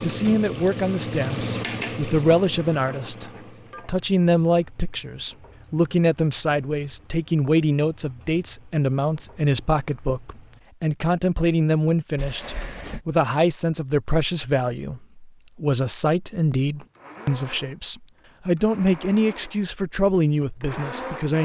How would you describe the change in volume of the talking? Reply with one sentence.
The volume of the talking stays about the same.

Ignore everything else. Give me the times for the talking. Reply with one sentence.
The talking can be heard from 0.0 to 21.3 s.